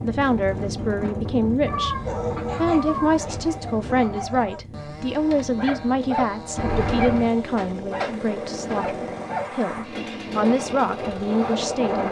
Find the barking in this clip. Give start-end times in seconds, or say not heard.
2.0-9.7.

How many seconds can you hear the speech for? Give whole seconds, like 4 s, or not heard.
12 s.